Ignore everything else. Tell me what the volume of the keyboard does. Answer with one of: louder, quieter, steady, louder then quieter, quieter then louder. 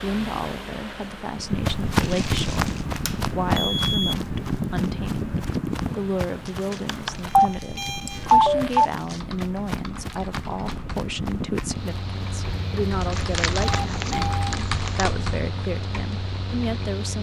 louder then quieter.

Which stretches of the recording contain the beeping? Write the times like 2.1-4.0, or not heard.
3.0-4.2, 6.8-8.9, 12.4-14.6.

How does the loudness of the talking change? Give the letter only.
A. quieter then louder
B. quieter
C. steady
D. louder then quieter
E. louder
C.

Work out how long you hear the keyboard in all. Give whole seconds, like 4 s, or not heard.
8 s.